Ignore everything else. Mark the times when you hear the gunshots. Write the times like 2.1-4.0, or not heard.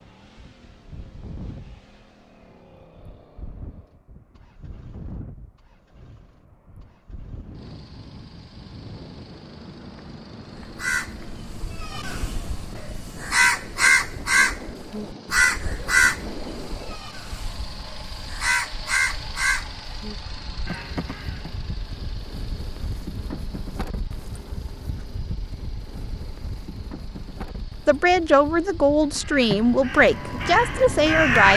not heard.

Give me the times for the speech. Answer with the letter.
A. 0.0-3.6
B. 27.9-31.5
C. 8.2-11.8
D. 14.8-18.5
B.